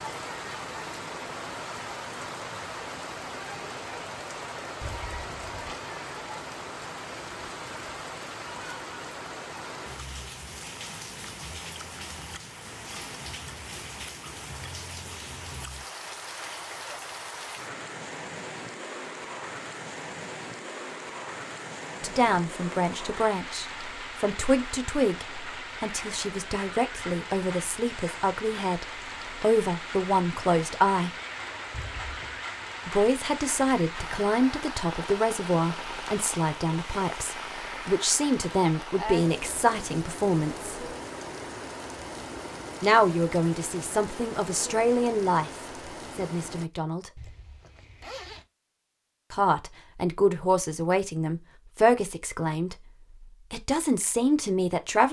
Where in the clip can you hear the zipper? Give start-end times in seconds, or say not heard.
4.8-5.7, 31.7-32.5, 47.1-48.5.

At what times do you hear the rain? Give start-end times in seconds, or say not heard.
0.0-46.7.